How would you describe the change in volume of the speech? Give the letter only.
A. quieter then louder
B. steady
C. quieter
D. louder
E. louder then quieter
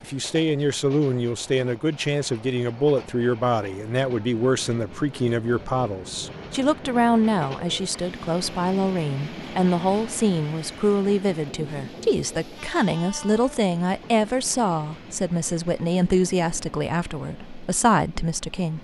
B.